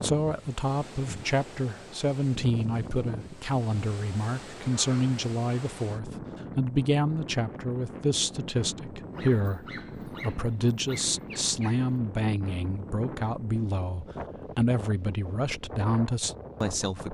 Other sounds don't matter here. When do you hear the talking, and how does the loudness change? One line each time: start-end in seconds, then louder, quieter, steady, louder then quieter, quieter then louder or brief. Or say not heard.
0.0-17.0 steady.